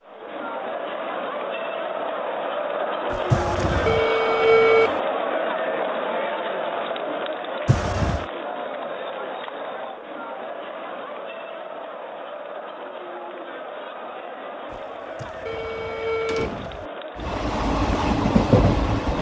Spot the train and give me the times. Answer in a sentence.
You can hear the train from 17.1 to 19.1 s.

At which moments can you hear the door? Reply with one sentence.
You can hear the door from 3.3 to 4.0 s, from 7.7 to 8.2 s and from 15.2 to 16.9 s.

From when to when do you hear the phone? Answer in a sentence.
The phone can be heard from 3.1 to 5.0 s and from 14.7 to 16.6 s.